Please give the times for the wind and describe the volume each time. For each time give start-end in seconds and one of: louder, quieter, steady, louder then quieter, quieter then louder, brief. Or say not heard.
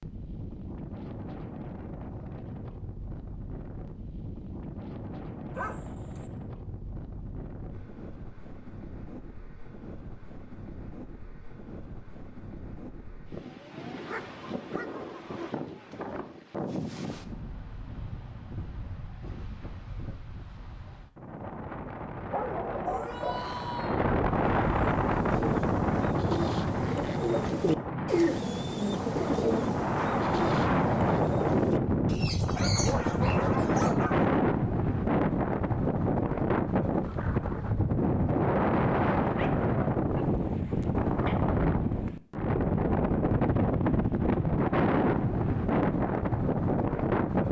0.0-47.4 louder.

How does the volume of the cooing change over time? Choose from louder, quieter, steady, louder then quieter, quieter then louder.
louder then quieter.